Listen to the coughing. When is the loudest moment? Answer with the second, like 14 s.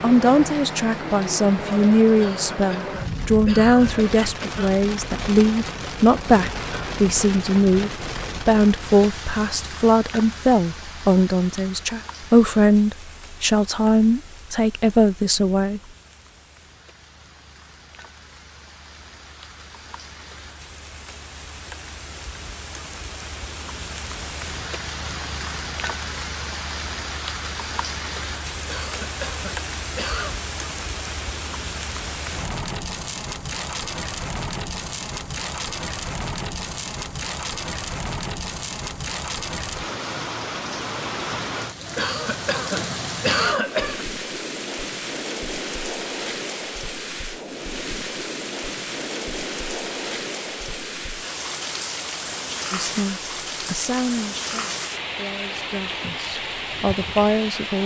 43 s.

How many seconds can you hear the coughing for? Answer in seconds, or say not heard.
6 s.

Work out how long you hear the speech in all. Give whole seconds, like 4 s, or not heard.
21 s.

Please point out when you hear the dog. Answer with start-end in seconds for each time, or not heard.
not heard.